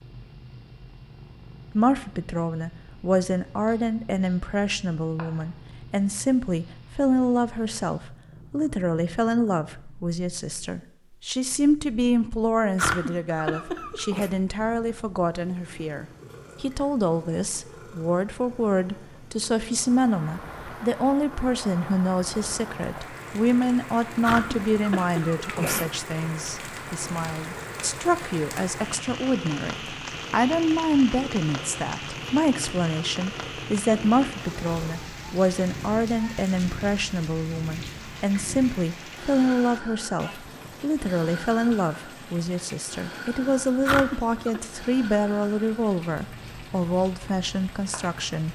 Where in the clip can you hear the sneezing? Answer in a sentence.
The sneezing can be heard from 12.8 to 14.3 s, from 24.2 to 25.9 s and from 43.9 to 44.6 s.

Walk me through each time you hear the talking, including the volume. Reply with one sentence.
The talking can be heard from 1.8 to 48.4 s, at a steady volume.